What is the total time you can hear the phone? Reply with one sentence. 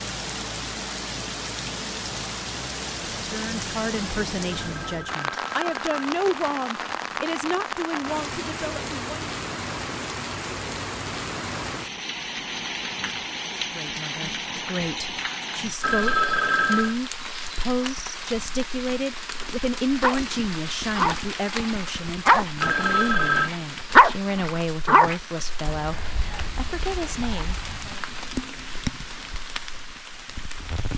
You can hear the phone for 4 seconds altogether.